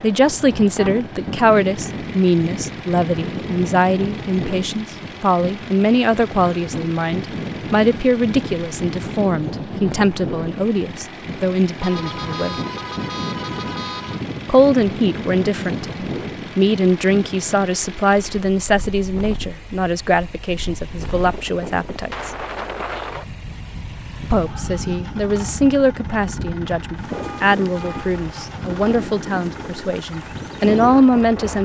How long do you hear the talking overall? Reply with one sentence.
The talking can be heard for 28 seconds in total.